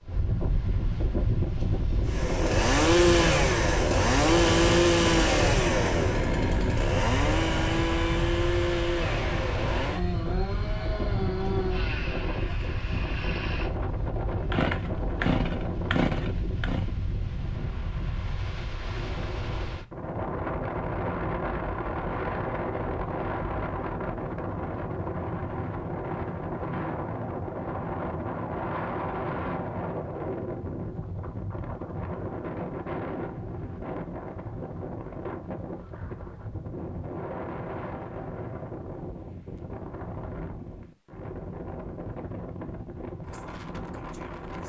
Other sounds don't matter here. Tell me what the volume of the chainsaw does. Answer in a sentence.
The loudness of the chainsaw goes down, then up.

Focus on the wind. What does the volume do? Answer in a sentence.
The loudness of the wind goes down.